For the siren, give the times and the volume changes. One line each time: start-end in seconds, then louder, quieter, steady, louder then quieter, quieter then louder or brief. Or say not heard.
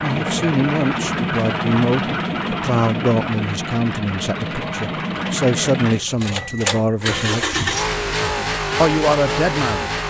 not heard.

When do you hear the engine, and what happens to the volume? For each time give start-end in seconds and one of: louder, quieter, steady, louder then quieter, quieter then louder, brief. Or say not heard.
0.0-10.0 steady.